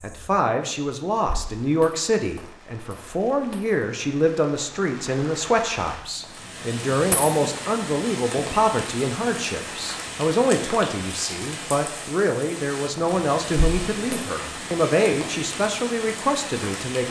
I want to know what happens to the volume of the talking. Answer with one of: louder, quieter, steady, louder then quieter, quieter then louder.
steady.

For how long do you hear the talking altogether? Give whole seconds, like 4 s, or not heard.
17 s.